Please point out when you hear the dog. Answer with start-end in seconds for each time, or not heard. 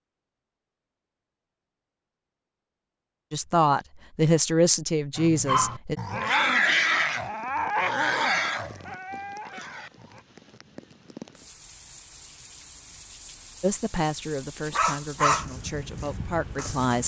5.2-10.2, 14.7-17.0.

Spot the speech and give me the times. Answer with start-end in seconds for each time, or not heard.
3.3-6.0, 13.6-17.0.